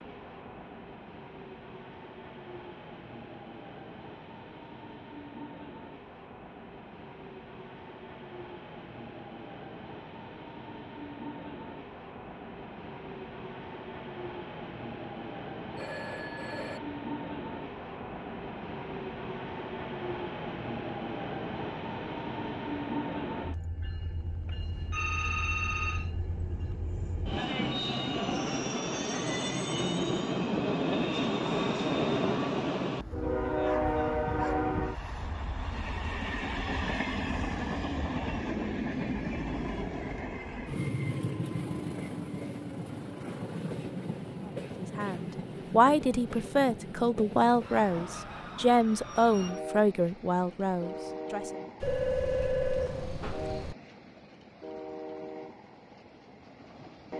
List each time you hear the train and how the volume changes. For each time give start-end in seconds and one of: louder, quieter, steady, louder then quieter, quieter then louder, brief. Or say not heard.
0.0-57.1 louder then quieter.